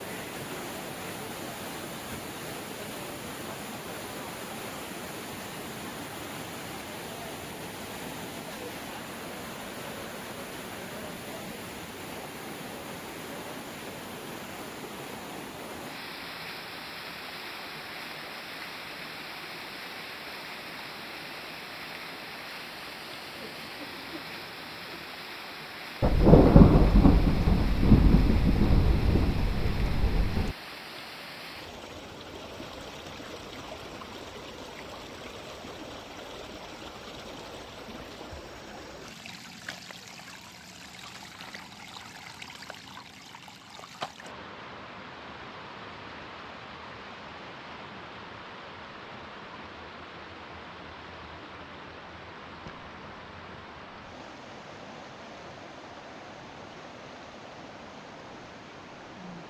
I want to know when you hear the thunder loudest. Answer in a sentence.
The loudest moment of the thunder is at 26 seconds.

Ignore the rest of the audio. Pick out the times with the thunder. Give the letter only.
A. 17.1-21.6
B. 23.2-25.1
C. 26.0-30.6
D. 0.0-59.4
C.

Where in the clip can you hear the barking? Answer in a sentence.
The barking can't be heard in this clip.